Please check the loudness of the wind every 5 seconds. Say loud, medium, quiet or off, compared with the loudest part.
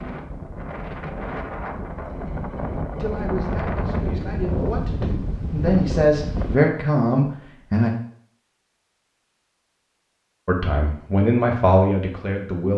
loud, loud, off.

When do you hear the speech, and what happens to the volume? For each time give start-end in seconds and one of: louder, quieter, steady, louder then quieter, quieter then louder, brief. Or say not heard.
3.0-7.9 louder
10.4-12.7 brief.